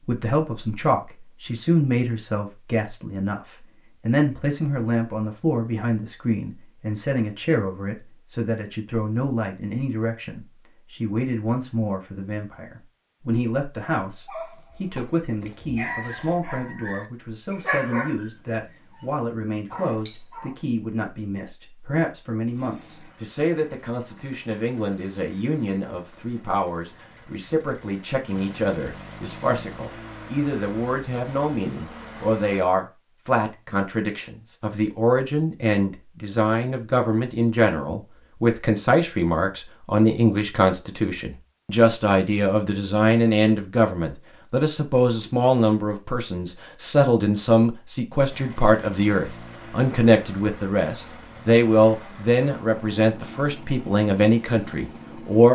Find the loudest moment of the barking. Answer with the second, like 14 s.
18 s.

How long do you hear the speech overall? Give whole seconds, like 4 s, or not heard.
55 s.